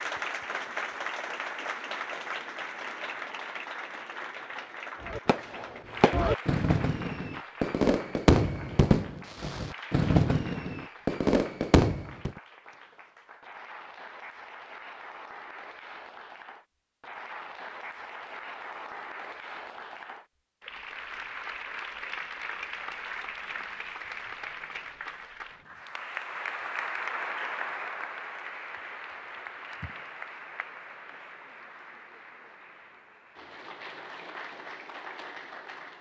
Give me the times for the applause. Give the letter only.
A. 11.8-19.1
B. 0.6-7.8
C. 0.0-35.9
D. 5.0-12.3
C.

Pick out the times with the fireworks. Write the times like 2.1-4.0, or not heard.
5.0-12.3.